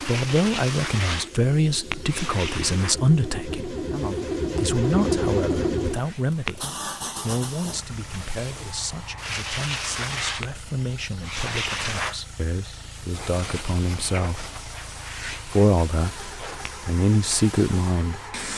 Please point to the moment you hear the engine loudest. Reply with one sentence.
The volume of the engine peaks at 5 seconds.